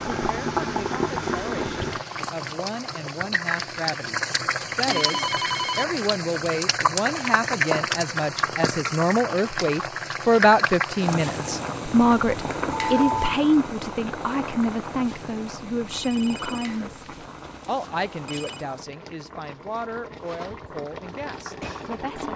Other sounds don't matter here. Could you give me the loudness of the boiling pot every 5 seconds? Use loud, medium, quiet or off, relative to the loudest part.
loud, loud, loud, quiet, medium.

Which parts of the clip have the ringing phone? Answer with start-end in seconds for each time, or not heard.
4.8-5.8, 12.7-13.4, 15.9-18.6.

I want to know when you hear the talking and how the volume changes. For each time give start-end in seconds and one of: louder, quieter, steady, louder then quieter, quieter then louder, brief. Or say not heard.
0.1-22.3 louder then quieter.